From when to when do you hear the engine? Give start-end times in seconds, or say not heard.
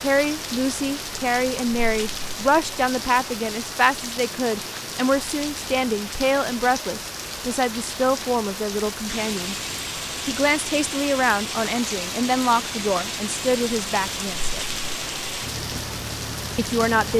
9.0-17.1.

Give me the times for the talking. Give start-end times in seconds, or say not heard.
0.0-9.6, 10.2-14.7, 16.6-17.1.